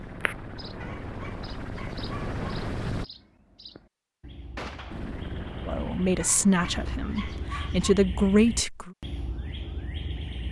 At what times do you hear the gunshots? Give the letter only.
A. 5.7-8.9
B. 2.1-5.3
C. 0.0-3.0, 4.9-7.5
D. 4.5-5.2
D.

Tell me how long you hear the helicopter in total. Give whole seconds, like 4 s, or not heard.
6 s.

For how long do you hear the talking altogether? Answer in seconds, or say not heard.
3 s.